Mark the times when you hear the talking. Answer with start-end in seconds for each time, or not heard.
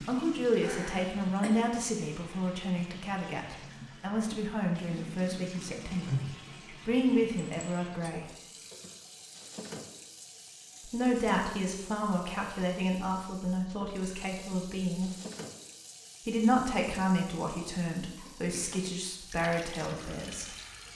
0.0-6.2, 6.8-8.2, 10.8-15.1, 16.2-20.4.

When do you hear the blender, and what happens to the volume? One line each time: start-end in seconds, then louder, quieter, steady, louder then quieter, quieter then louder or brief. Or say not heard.
not heard.